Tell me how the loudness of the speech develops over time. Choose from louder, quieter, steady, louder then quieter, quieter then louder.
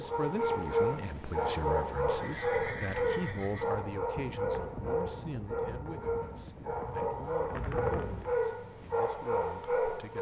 quieter.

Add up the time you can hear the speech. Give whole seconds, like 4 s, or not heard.
10 s.